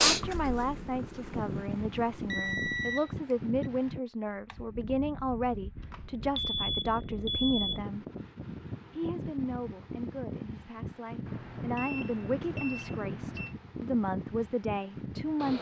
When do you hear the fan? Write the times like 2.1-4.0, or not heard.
0.0-15.5.